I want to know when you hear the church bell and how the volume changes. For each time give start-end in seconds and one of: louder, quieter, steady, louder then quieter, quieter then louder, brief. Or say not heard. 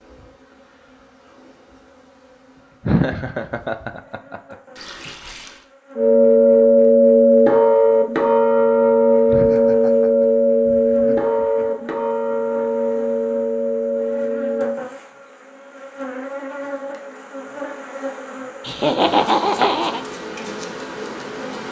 6.0-14.8 quieter.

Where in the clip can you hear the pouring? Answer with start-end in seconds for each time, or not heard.
4.8-5.7.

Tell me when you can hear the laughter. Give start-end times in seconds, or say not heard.
2.9-4.5, 9.2-11.8, 18.6-20.0.